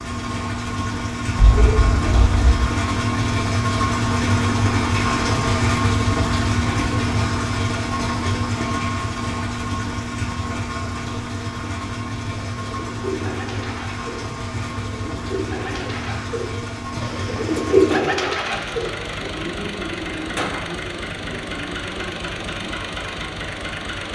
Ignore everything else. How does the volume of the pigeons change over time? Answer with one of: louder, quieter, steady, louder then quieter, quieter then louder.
louder then quieter.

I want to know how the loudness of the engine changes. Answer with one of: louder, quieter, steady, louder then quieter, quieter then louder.
quieter.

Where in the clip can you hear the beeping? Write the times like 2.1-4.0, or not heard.
1.4-2.6.